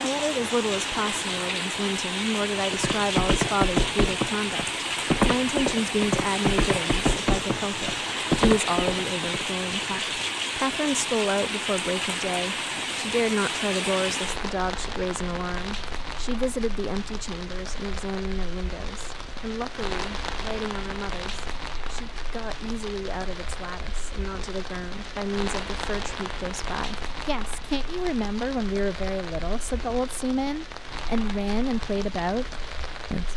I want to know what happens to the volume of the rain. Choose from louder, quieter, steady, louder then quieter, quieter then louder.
quieter.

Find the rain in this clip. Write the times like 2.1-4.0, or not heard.
0.0-33.3.